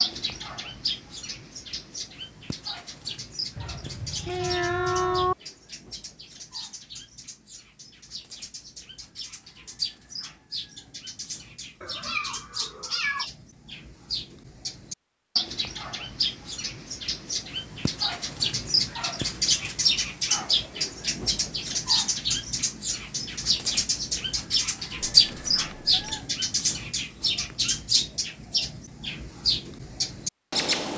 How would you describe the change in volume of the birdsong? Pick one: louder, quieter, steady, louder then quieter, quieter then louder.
louder.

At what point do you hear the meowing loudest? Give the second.
5 s.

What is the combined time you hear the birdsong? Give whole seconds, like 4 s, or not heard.
31 s.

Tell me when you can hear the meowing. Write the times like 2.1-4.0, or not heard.
3.5-5.3, 11.8-13.2, 25.0-26.2.